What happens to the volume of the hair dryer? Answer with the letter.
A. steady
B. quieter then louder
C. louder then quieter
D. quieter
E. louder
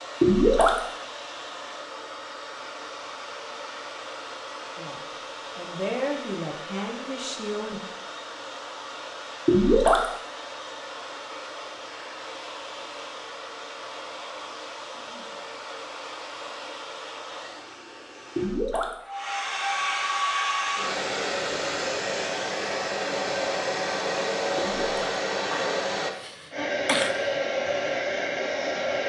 E.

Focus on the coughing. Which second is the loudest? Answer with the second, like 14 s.
27 s.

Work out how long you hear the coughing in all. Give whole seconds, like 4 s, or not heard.
2 s.